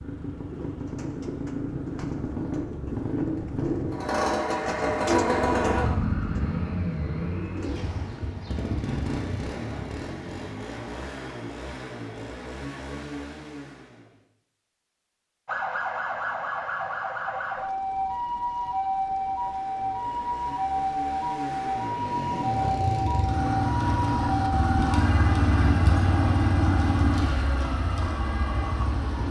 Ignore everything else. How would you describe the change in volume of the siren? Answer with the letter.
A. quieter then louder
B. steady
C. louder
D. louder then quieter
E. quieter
E.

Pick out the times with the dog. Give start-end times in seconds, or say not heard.
not heard.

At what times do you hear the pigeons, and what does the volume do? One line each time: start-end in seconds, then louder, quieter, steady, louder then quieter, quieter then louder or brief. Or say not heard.
0.3-8.3 louder then quieter.